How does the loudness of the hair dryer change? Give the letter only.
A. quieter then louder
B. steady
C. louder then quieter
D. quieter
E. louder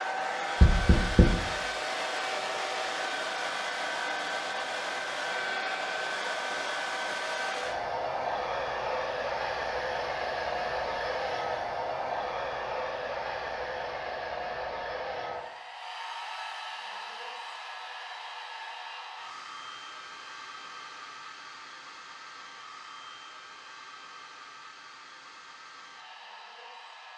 D.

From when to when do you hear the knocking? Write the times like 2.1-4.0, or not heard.
0.6-1.4.